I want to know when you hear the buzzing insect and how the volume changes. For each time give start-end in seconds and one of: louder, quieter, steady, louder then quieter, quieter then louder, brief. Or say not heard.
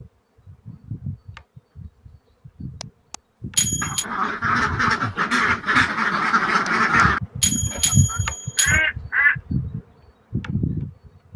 0.0-11.3 louder.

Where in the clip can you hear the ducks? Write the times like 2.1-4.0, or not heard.
3.8-7.2, 7.8-9.3.